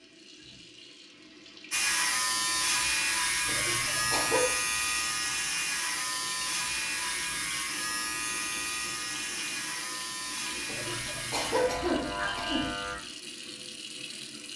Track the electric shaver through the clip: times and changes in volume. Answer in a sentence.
The electric shaver can be heard from 1.7 to 12.9 s, getting quieter.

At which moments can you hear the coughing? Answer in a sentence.
You can hear the coughing from 3.5 to 4.5 s and from 10.7 to 12.8 s.